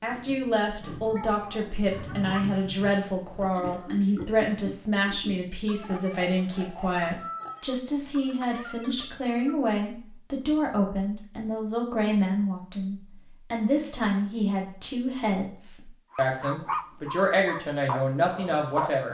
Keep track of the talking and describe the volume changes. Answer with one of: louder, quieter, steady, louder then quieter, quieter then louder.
steady.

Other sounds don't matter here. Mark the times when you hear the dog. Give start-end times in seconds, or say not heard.
16.1-19.1.